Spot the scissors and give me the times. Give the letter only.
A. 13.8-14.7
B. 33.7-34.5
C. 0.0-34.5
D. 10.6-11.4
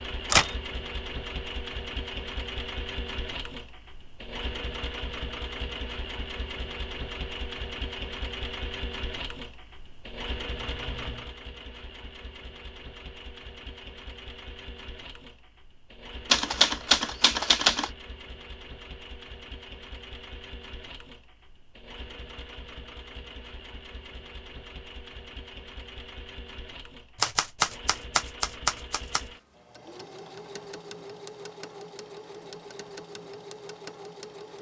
D.